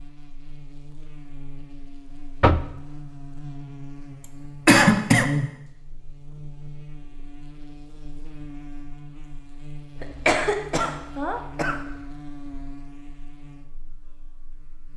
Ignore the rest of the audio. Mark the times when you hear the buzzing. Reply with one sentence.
You can hear the buzzing from 0.0 to 14.9 s.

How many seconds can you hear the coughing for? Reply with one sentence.
The coughing can be heard for 3 seconds in total.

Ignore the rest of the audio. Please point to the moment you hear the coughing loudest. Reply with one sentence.
The loudest moment of the coughing is at 5 seconds.